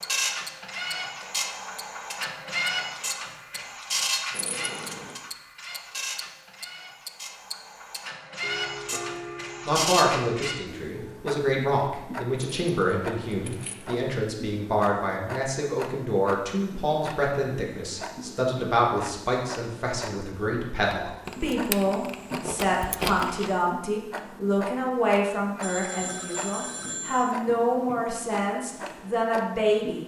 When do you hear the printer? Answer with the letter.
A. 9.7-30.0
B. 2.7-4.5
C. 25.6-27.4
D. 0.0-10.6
D.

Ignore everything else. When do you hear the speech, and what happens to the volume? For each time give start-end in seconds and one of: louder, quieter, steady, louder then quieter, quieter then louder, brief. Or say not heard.
9.7-30.0 steady.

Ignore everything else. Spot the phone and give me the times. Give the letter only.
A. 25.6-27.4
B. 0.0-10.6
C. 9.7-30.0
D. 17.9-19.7
A.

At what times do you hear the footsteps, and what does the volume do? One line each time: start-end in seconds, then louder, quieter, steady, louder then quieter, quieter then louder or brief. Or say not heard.
not heard.